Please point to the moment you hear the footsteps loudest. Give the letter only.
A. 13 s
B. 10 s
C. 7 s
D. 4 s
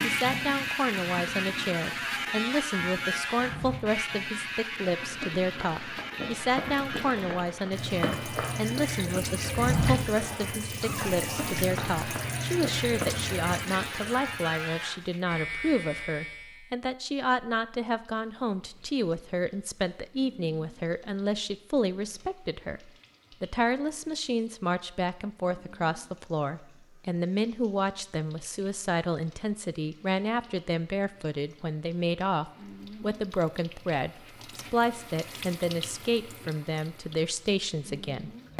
B.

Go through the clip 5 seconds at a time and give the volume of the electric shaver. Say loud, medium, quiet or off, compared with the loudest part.
loud, medium, medium, medium, off, off, off, off.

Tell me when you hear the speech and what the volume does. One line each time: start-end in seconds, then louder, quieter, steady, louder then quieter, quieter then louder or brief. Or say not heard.
0.0-38.5 steady.